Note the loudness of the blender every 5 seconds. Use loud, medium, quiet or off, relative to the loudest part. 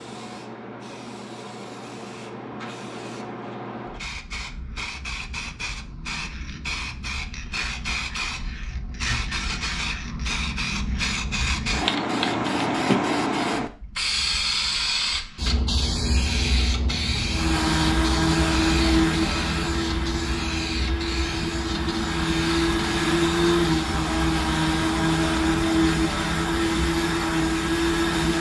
off, off, off, loud, loud, loud.